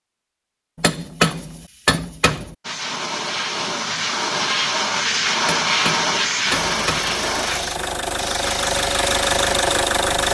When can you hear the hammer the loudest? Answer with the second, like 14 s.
1 s.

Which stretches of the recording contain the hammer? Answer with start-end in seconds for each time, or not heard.
0.8-2.5, 5.4-7.2.